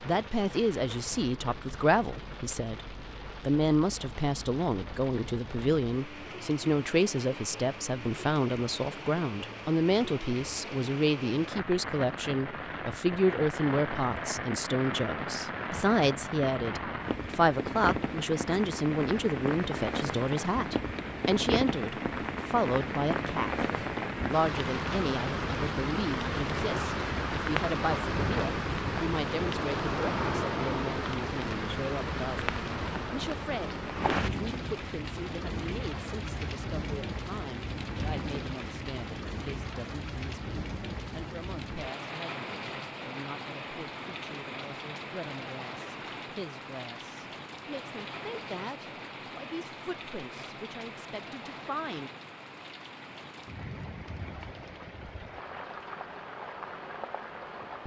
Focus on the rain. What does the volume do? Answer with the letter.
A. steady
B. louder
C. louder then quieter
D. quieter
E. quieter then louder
C.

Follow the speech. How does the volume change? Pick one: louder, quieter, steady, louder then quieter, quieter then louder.
quieter.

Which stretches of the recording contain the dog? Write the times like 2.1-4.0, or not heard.
not heard.